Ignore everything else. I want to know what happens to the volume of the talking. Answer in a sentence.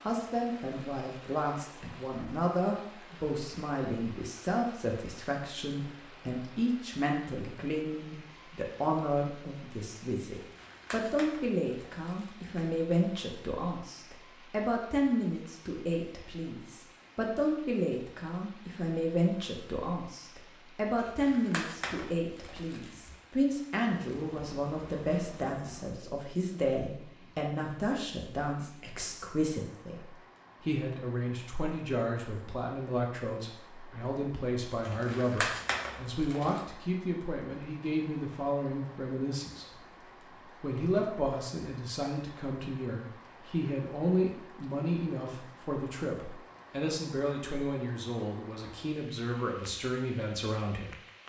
The volume of the talking stays about the same.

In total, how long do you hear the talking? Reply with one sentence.
You can hear the talking for 50 seconds altogether.